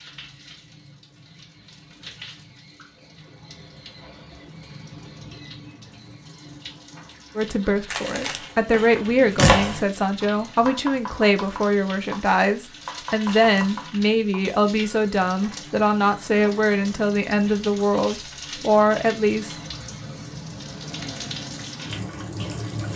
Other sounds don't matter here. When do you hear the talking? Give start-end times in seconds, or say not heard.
7.3-19.6.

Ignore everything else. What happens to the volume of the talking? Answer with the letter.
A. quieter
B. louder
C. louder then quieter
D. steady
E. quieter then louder
D.